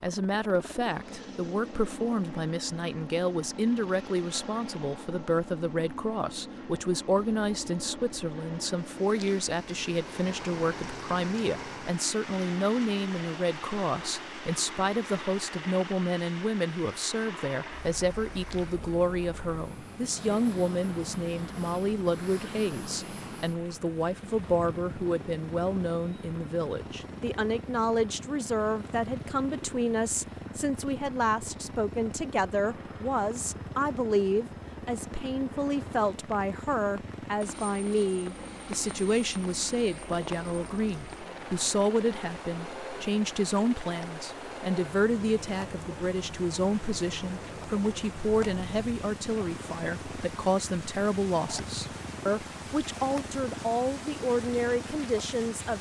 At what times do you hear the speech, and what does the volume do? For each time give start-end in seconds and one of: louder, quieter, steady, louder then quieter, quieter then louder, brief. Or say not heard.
0.0-55.7 steady.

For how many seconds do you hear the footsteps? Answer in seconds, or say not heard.
not heard.